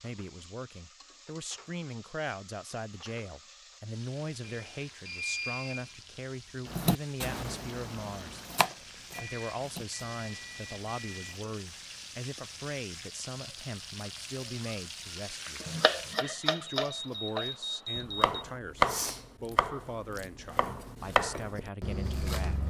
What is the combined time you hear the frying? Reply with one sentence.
The frying can be heard for 16 seconds in total.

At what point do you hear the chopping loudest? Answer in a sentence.
The volume of the chopping peaks at 19 seconds.